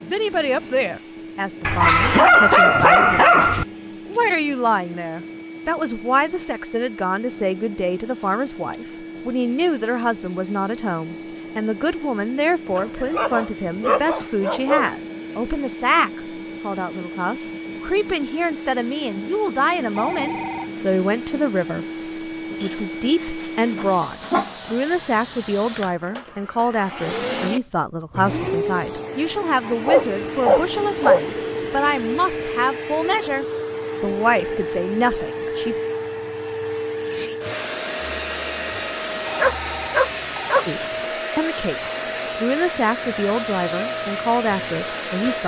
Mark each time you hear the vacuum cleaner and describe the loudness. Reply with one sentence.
You can hear the vacuum cleaner from 0.0 to 45.4 s, getting louder.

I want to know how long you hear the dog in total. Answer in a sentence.
The dog can be heard for 9 seconds in total.